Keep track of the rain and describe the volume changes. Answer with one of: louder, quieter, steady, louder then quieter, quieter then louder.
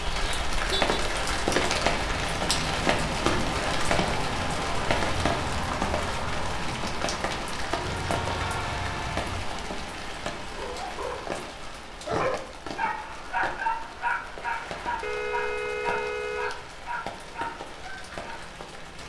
quieter.